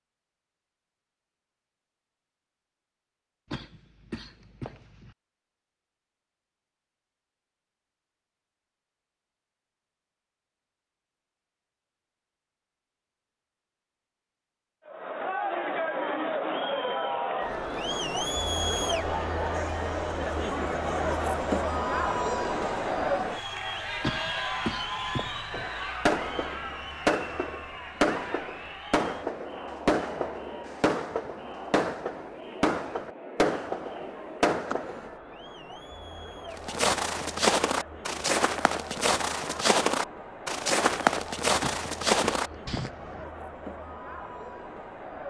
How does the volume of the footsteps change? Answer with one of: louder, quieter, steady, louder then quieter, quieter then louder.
steady.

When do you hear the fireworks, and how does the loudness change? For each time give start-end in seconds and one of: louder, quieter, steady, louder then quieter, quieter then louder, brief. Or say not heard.
25.5-35.1 steady.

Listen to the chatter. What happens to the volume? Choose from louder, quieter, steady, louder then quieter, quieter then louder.
quieter.